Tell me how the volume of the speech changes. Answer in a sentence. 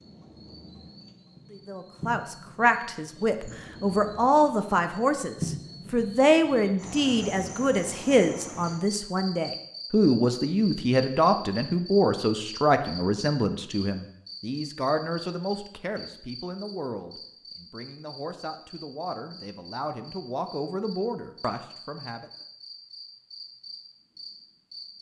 The loudness of the speech goes down.